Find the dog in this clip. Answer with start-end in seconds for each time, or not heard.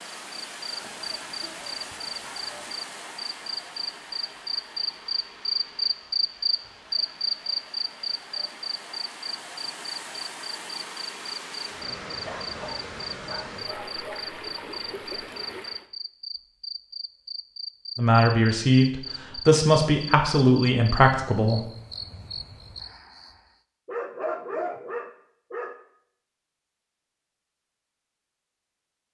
0.8-2.5, 12.2-14.2, 23.9-25.8.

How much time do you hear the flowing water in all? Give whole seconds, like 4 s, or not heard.
16 s.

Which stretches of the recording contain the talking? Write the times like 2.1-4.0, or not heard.
17.9-21.7.